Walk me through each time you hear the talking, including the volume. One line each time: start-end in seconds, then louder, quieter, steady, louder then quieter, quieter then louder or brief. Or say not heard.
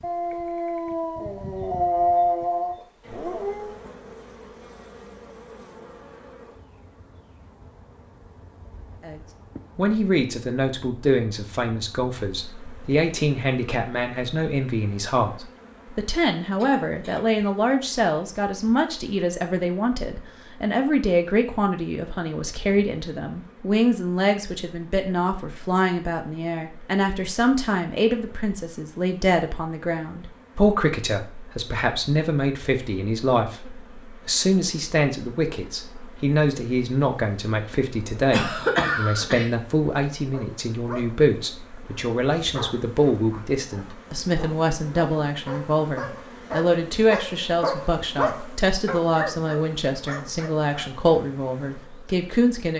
9.0-52.7 steady.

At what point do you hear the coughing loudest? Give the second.
39 s.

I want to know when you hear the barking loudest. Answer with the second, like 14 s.
2 s.